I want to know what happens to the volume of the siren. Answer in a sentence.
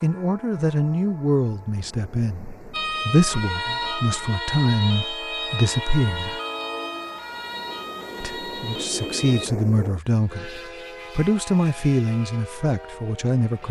The loudness of the siren goes down.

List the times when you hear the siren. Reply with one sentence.
You can hear the siren from 2.7 to 9.5 s.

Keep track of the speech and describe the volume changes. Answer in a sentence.
The loudness of the speech stays about the same.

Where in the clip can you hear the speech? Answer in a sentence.
You can hear the speech from 0.0 to 6.4 s and from 8.2 to 13.6 s.